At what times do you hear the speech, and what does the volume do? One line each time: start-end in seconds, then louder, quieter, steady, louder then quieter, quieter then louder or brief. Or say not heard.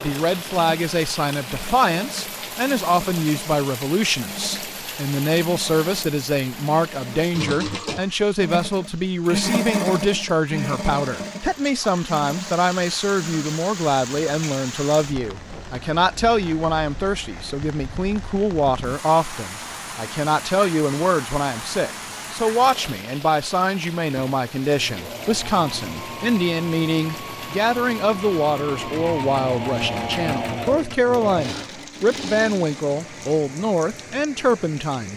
0.0-35.1 steady.